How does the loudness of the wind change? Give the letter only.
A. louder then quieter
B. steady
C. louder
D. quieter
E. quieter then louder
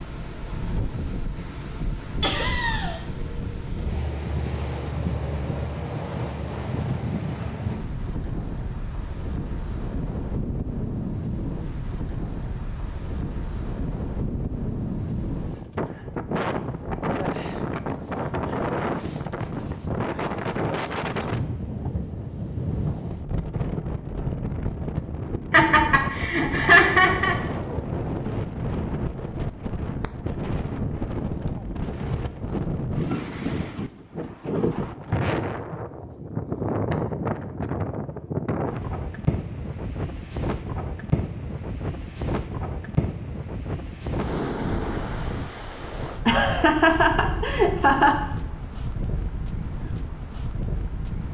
B.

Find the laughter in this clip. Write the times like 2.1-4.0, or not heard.
2.2-3.0, 25.5-27.4, 46.2-48.1.